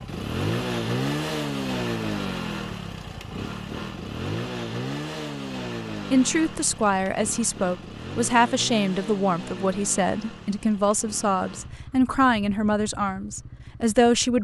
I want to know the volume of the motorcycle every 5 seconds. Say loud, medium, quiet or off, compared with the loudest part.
loud, medium, quiet.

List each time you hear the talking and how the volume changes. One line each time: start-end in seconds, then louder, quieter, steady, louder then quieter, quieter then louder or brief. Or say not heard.
6.1-14.3 steady.